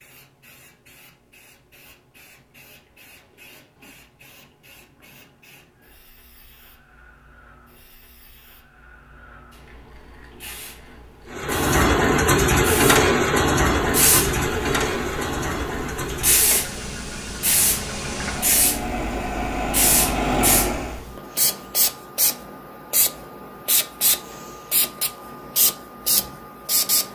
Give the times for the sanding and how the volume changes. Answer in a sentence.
The sanding can't be heard in this clip.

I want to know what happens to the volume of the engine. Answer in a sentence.
The loudness of the engine goes down, then up.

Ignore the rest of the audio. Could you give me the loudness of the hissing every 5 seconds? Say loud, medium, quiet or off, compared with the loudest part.
quiet, quiet, loud, loud, loud, loud.